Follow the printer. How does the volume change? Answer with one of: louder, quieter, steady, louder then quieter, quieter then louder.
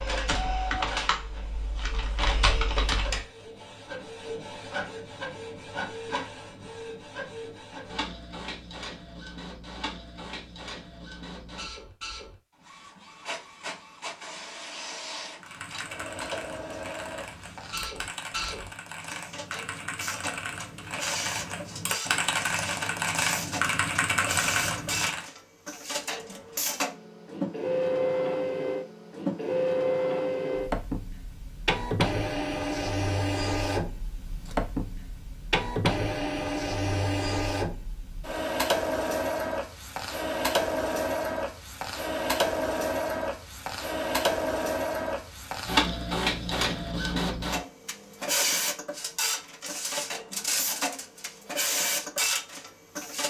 louder.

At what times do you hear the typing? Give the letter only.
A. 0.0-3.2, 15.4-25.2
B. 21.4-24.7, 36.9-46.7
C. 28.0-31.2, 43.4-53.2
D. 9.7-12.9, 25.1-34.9
A.